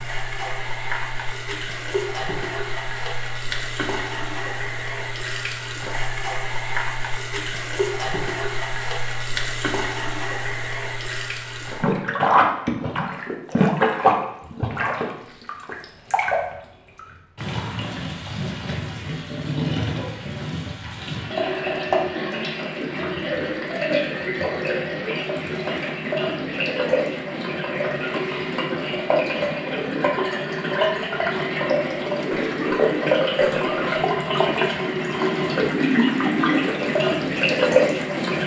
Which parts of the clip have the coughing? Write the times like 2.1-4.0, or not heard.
32.3-33.9.